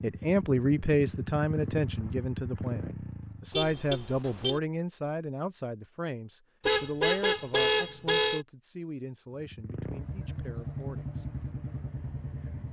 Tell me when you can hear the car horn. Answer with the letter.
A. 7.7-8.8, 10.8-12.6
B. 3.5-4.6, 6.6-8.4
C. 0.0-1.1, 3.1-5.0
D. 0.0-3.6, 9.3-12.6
B.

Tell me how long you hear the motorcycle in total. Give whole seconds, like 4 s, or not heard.
7 s.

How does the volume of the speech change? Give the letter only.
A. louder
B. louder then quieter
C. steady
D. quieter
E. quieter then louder
D.